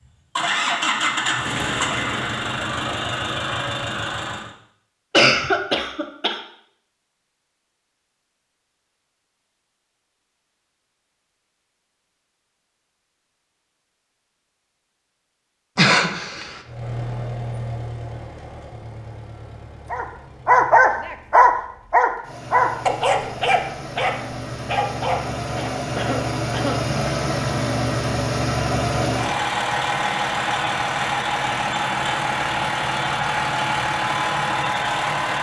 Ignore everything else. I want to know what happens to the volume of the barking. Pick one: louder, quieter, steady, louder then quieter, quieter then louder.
quieter.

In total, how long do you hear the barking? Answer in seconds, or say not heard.
6 s.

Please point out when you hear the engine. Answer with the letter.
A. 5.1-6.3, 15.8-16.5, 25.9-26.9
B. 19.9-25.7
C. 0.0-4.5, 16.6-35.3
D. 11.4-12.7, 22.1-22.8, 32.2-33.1
C.